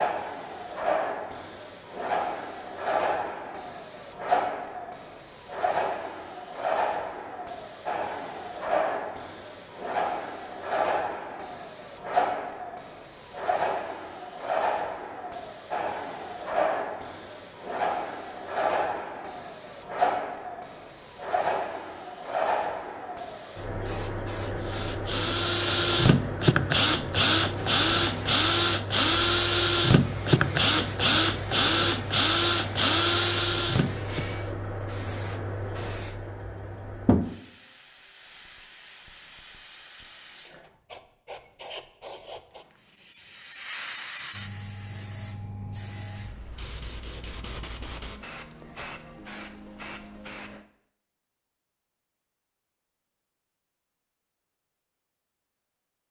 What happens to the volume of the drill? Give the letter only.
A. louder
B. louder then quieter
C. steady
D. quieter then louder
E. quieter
C.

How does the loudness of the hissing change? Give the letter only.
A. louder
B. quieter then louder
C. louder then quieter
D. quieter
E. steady
D.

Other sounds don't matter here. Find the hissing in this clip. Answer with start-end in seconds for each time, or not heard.
0.0-50.6.